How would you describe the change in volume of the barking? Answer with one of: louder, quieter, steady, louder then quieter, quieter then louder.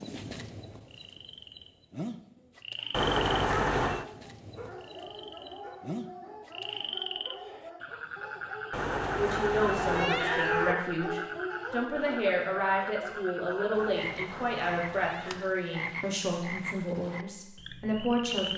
louder then quieter.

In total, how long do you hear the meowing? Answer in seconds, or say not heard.
5 s.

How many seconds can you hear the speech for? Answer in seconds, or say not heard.
9 s.